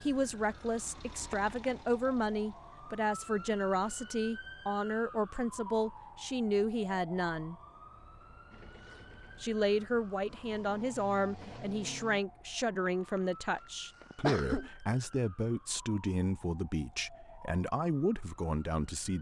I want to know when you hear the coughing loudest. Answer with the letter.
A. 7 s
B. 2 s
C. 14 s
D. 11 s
C.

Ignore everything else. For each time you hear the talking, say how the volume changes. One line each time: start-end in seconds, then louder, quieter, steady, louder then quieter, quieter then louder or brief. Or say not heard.
0.0-7.5 steady
9.4-19.1 steady.